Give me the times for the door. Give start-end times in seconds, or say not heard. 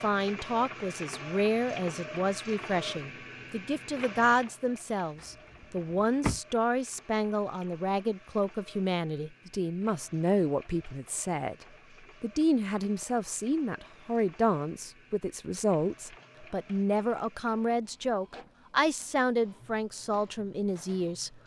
5.2-6.4.